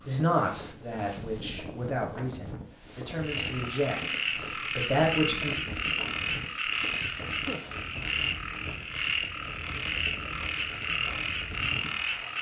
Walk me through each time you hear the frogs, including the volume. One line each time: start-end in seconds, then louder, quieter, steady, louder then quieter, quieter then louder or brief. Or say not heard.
3.2-12.3 steady.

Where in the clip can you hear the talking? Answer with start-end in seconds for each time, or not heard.
0.1-5.6.